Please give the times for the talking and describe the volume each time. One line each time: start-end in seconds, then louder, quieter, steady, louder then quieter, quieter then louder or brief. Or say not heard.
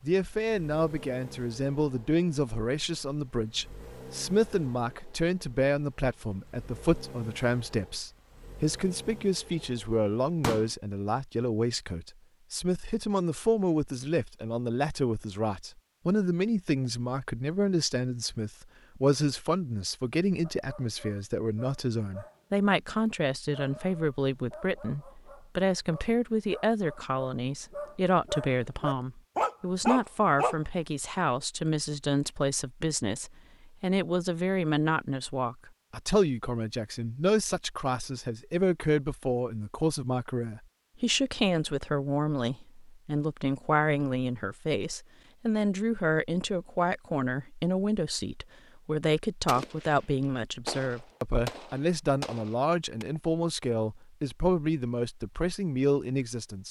0.0-56.6 steady.